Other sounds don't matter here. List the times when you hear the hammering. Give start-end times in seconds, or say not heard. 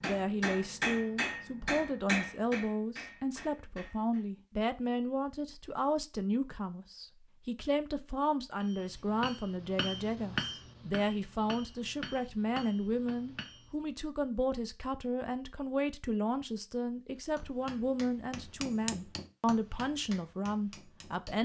0.0-4.2, 8.6-13.8, 17.4-21.4.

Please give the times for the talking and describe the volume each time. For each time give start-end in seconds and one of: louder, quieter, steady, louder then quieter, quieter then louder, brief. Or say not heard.
0.0-21.4 steady.